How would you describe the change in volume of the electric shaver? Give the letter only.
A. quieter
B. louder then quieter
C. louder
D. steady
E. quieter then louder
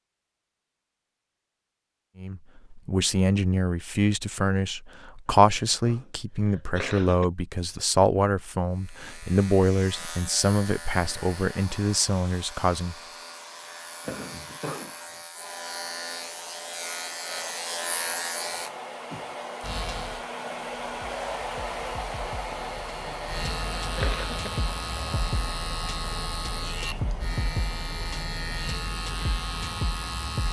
C.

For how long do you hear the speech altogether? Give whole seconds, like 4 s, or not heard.
11 s.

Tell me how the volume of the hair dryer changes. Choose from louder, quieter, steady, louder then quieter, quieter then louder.
louder then quieter.